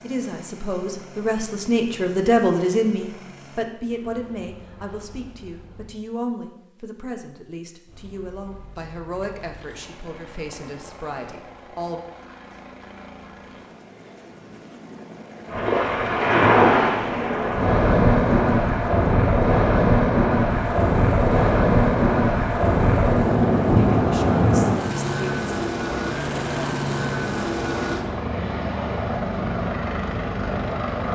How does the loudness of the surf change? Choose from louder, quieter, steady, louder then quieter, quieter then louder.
quieter.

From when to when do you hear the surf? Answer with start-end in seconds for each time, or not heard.
15.5-31.0.